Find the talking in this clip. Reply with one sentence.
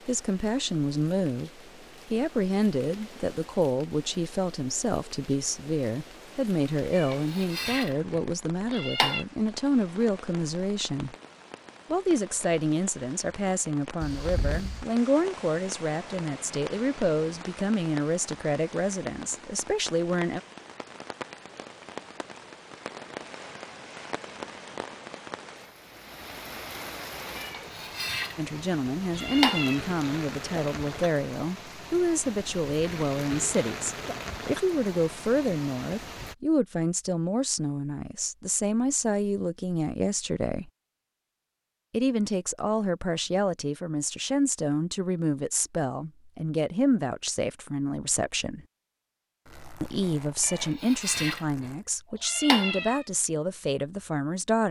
You can hear the talking from 0.1 to 11.2 s, from 11.9 to 20.4 s, from 28.4 to 40.7 s, from 41.9 to 48.6 s and from 49.8 to 54.6 s.